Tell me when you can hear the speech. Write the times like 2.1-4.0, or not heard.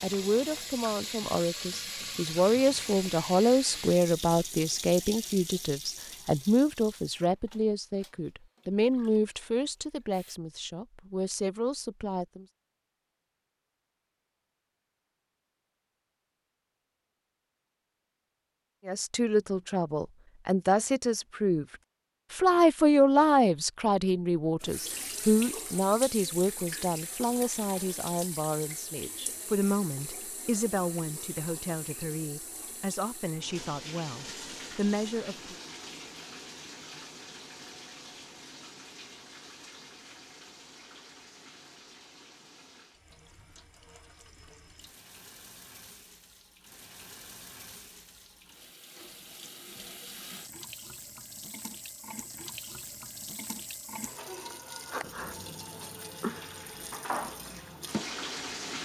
0.0-12.4, 18.9-21.6, 22.3-35.5.